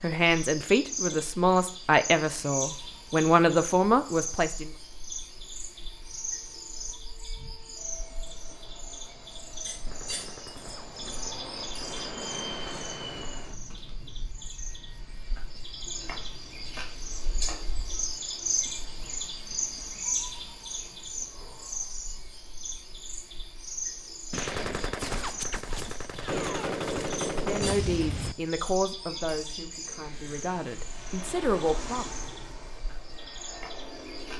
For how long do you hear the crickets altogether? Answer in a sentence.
You can hear the crickets for 34 seconds altogether.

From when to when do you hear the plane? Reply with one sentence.
The plane can be heard from 5.9 to 17.4 s and from 29.6 to 34.3 s.